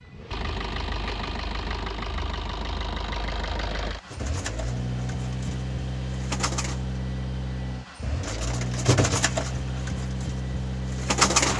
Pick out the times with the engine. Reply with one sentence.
The engine can be heard from 0.0 to 11.5 s.